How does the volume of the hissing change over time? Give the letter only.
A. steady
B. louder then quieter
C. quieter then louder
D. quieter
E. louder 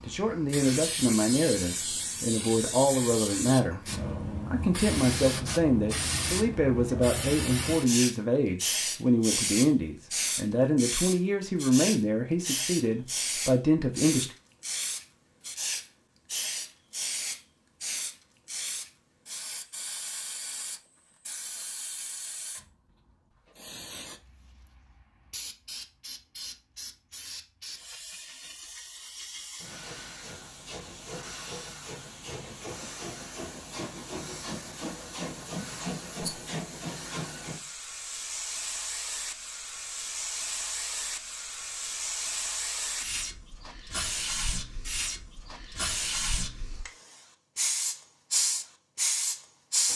C.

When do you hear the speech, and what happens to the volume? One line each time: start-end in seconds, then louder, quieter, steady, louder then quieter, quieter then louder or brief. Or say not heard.
0.0-14.3 steady.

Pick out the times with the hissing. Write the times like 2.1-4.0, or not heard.
0.0-49.9.